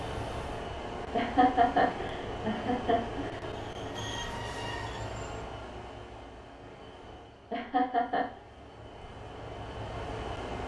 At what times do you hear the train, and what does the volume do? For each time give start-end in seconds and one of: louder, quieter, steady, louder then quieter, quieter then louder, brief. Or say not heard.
0.0-10.6 quieter then louder.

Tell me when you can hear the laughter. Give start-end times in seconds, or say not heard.
1.1-3.4, 7.5-8.4.